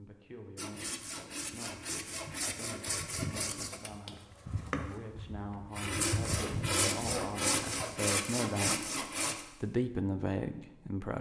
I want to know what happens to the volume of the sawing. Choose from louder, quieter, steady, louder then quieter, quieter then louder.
louder.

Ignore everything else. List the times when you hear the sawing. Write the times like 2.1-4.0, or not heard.
0.6-9.4.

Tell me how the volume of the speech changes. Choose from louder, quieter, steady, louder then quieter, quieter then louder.
louder.